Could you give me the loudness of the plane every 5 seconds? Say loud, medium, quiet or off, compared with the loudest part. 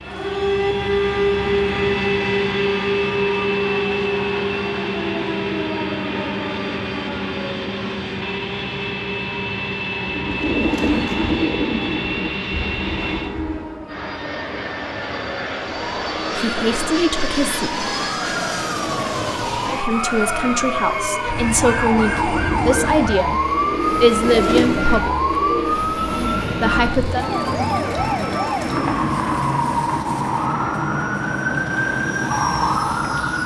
loud, loud, loud, loud, medium, quiet, medium.